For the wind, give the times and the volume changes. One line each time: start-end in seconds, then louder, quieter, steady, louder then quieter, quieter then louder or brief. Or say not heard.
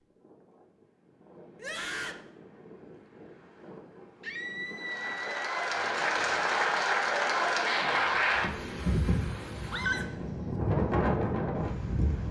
0.0-12.2 louder.